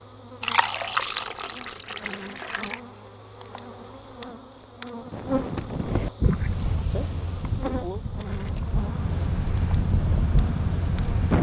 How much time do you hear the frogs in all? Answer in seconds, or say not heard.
not heard.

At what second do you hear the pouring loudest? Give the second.
1 s.